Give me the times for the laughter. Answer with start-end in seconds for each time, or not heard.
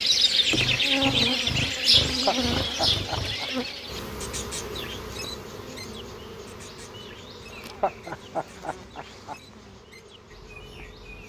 2.0-3.5, 7.5-9.3.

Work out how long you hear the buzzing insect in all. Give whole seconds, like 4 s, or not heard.
11 s.